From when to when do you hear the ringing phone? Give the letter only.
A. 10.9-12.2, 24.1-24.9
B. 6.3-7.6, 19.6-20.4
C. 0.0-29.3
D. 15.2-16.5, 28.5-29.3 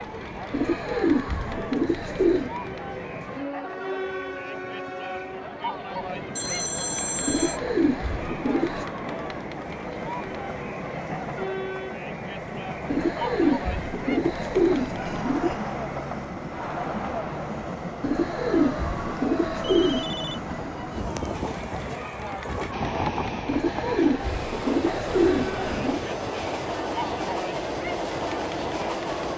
B.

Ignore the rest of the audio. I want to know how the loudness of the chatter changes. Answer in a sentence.
The volume of the chatter stays about the same.